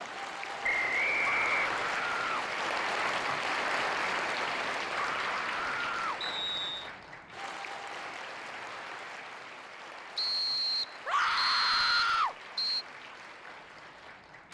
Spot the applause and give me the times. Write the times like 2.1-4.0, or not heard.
0.0-14.4.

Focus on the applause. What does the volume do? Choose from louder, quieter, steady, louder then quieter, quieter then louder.
quieter.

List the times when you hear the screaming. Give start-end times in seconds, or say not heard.
1.1-2.5, 5.0-6.2, 11.1-12.3.